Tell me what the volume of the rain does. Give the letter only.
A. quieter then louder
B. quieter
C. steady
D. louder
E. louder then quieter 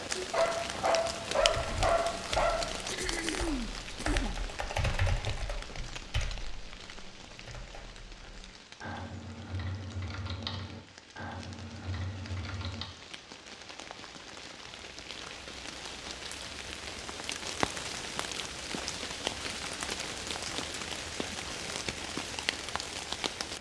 A.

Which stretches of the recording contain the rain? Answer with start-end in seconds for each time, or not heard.
0.0-23.5.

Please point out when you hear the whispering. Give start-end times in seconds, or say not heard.
not heard.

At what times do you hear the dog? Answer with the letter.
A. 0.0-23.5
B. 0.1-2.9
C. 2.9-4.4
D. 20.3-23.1
B.